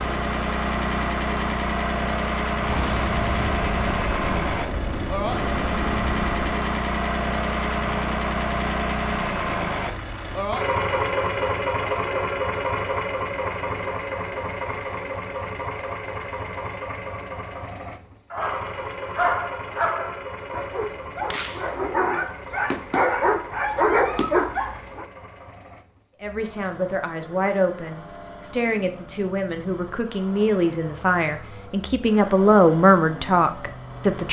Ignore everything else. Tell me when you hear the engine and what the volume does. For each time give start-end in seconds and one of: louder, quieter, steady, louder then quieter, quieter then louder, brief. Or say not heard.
0.0-34.2 quieter.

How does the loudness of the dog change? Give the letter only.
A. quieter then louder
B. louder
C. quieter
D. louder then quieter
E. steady
A.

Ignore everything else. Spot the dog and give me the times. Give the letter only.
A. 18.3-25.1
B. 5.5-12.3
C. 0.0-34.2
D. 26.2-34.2
A.